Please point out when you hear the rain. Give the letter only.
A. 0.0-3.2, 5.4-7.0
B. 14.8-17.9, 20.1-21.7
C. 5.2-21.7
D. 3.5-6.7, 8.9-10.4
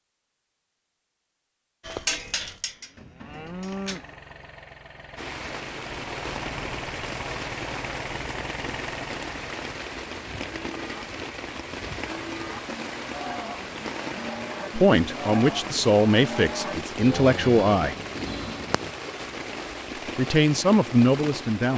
C.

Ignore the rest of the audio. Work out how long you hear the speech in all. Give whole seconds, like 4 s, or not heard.
5 s.